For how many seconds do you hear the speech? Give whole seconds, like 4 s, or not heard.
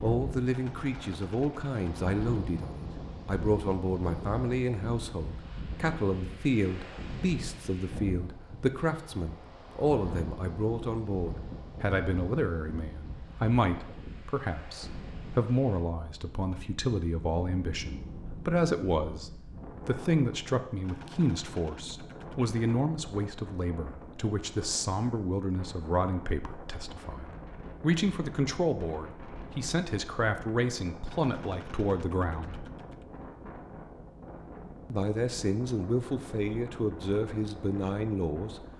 36 s.